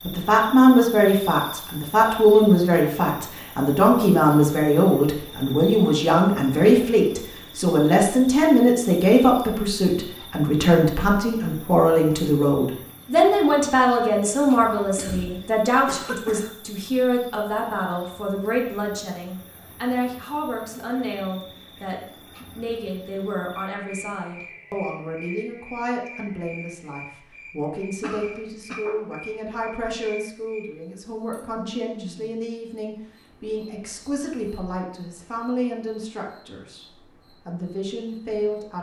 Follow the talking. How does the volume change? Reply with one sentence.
The volume of the talking goes down.